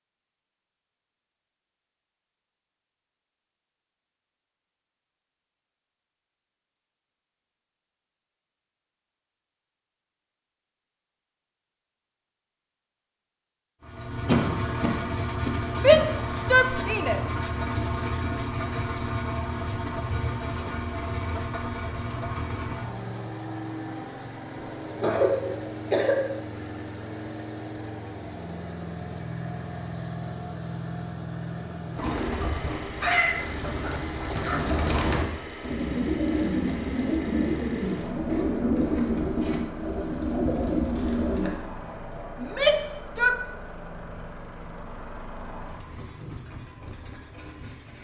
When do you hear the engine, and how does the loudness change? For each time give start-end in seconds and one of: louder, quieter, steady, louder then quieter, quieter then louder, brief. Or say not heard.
13.8-47.9 quieter.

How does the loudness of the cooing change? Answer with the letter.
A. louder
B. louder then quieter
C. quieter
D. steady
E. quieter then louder
D.